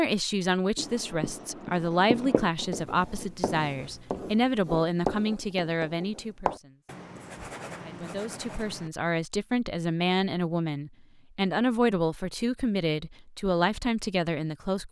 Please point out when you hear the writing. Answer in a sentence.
The writing can be heard from 0.8 to 8.9 s.